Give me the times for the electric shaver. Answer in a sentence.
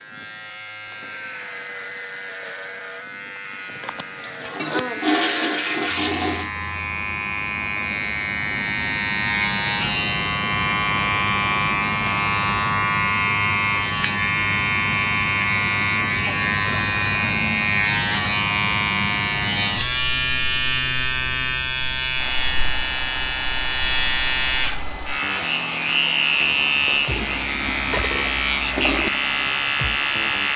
You can hear the electric shaver from 0.0 to 30.5 s.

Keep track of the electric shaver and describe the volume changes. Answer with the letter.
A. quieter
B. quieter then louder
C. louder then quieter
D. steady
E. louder
E.